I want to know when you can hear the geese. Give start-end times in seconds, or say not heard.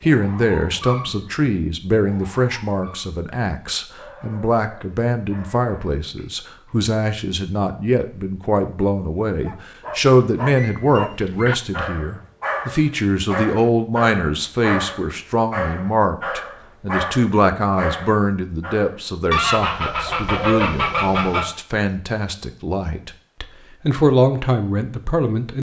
19.3-21.4.